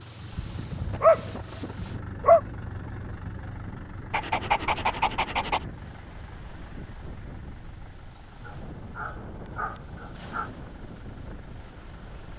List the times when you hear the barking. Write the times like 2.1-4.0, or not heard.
0.3-2.4, 4.1-5.7, 8.4-10.5.